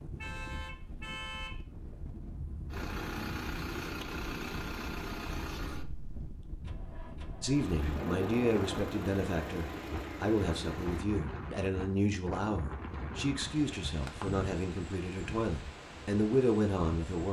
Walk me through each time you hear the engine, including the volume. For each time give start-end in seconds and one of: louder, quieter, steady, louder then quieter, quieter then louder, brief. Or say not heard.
2.7-11.1 quieter then louder.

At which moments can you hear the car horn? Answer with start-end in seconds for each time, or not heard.
0.1-1.6.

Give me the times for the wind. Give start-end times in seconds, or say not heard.
0.0-17.2.